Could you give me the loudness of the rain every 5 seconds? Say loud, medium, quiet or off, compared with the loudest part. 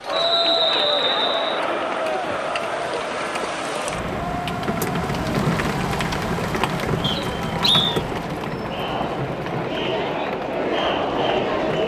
medium, loud, medium.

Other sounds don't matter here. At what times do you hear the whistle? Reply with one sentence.
The whistle can be heard from 0.1 to 1.6 s and from 7.0 to 8.0 s.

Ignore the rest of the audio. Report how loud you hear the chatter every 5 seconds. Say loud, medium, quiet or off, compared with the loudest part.
loud, medium, loud.